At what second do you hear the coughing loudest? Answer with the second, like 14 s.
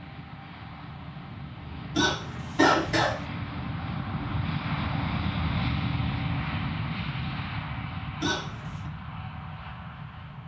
3 s.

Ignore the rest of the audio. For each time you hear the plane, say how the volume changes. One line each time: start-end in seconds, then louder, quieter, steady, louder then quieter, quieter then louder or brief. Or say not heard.
0.0-10.4 louder then quieter.